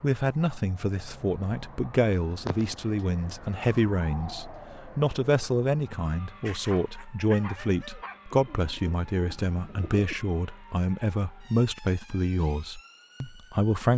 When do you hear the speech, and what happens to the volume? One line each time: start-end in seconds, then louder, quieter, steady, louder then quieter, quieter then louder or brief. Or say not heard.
0.0-13.9 steady.